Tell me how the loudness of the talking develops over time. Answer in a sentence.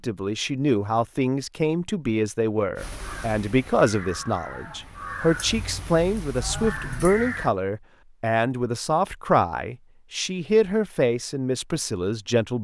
The volume of the talking stays about the same.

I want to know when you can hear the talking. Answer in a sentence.
The talking can be heard from 0.0 to 12.5 s.